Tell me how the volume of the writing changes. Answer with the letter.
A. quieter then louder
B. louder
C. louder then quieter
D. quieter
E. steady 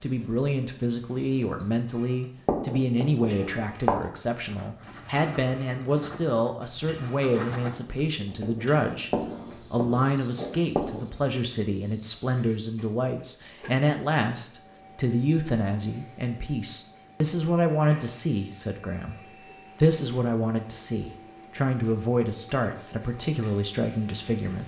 A.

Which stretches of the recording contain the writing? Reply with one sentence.
You can hear the writing from 2.5 to 11.1 s.